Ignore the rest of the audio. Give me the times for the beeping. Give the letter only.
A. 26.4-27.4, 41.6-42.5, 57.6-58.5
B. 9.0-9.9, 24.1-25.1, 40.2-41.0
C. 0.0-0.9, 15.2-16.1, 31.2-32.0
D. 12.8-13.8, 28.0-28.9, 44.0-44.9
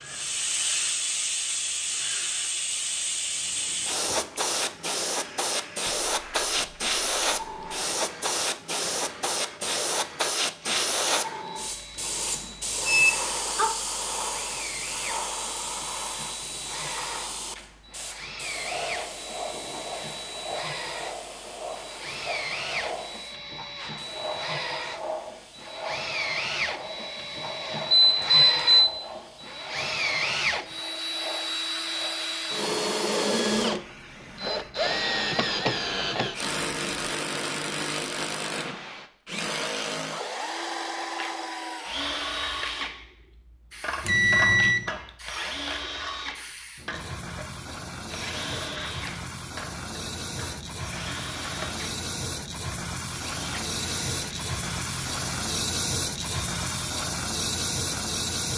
D.